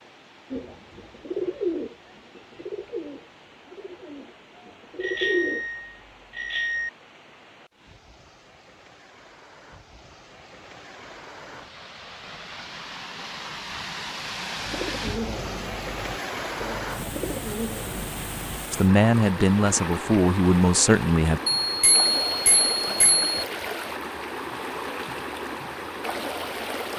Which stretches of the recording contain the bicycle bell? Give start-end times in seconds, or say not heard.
5.0-6.9, 21.6-23.3.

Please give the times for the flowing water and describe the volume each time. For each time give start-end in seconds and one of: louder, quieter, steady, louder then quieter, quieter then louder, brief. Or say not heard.
0.0-26.9 louder.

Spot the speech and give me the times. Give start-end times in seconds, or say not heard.
18.7-21.4.